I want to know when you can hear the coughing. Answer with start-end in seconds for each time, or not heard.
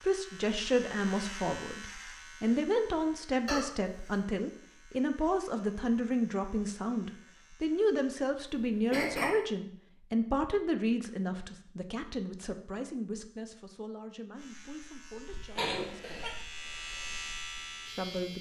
3.5-4.2, 8.5-9.3, 15.6-16.4.